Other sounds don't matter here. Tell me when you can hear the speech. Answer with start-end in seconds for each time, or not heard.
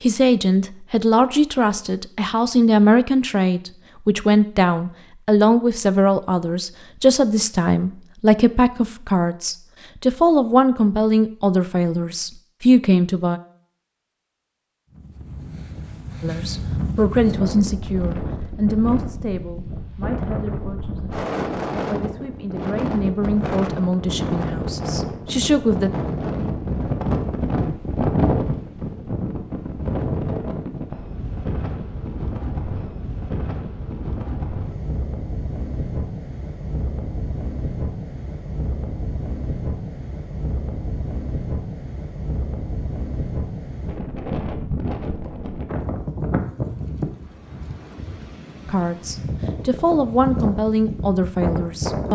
0.0-13.4, 16.2-25.9, 48.6-52.1.